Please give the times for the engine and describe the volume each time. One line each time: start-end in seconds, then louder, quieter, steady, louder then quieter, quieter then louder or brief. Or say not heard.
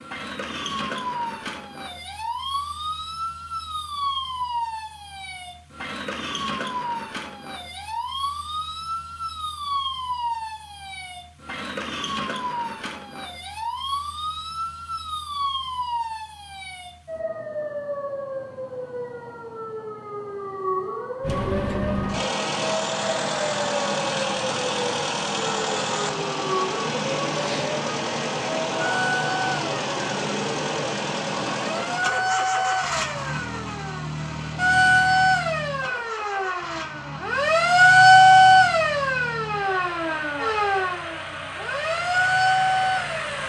21.2-43.4 quieter.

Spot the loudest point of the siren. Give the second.
38 s.